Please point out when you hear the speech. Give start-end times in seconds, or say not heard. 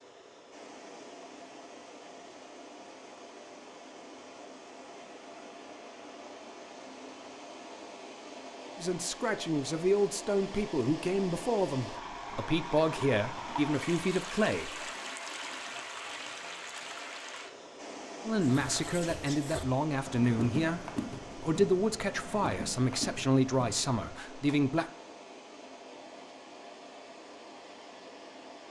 8.8-14.8, 18.2-24.9.